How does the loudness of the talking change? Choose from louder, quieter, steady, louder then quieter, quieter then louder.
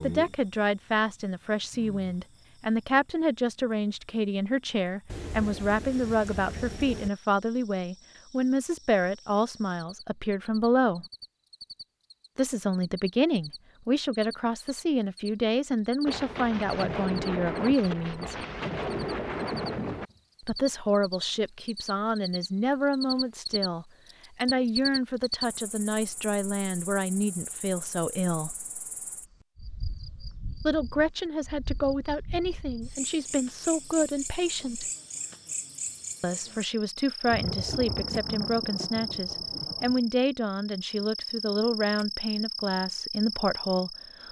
steady.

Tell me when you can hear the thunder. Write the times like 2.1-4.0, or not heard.
5.0-7.1, 16.1-20.1, 37.2-40.0.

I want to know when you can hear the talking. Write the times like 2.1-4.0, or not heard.
0.0-11.1, 12.3-18.4, 20.4-28.6, 30.6-34.9, 36.2-44.2.